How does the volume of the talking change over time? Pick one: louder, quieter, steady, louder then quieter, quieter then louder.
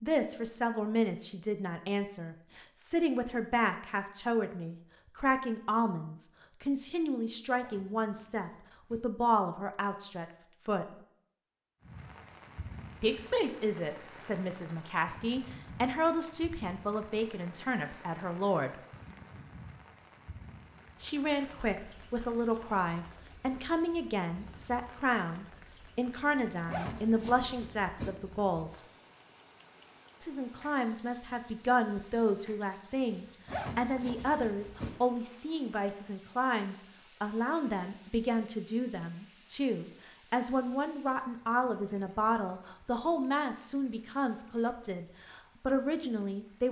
steady.